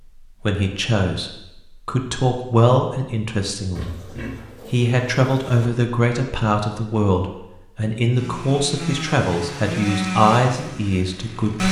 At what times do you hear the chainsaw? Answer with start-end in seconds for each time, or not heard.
8.2-11.6.